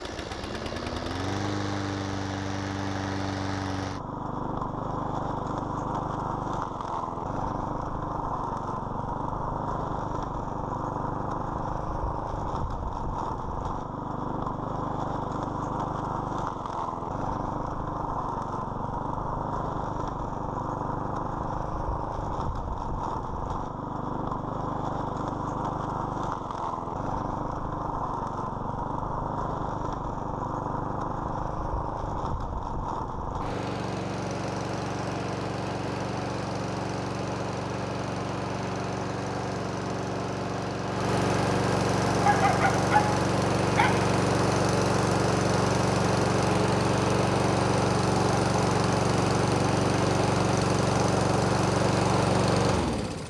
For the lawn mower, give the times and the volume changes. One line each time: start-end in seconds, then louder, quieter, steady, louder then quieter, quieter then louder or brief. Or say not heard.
0.0-53.2 louder.